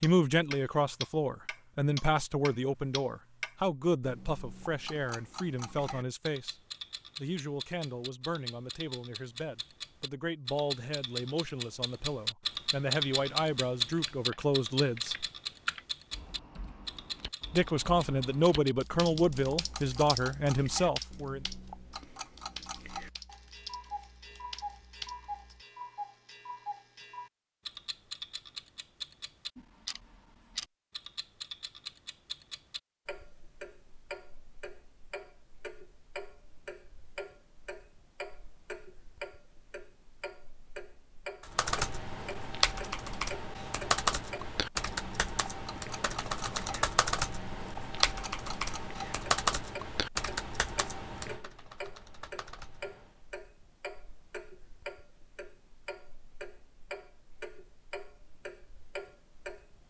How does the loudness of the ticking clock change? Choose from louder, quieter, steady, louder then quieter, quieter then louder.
quieter.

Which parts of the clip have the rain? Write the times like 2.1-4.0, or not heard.
not heard.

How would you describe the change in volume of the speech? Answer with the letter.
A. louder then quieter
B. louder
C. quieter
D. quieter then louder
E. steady
D.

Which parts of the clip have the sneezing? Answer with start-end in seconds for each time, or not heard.
not heard.